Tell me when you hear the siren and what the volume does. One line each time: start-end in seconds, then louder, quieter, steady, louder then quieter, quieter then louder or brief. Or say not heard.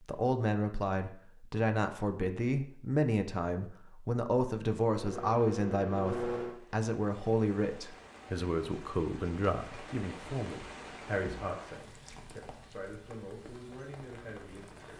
not heard.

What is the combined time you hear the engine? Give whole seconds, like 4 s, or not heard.
2 s.